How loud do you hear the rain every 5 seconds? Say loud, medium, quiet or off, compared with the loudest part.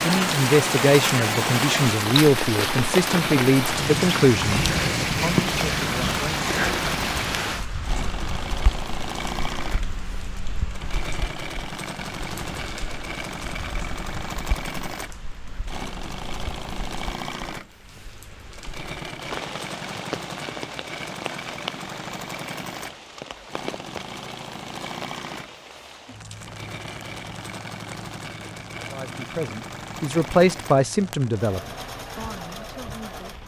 loud, loud, quiet, quiet, quiet, quiet, quiet.